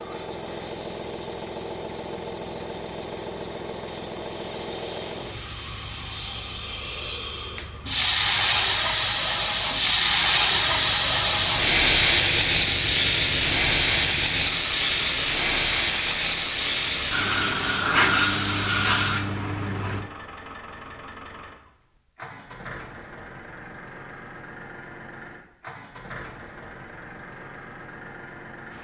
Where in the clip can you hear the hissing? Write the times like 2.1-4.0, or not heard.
0.0-20.1.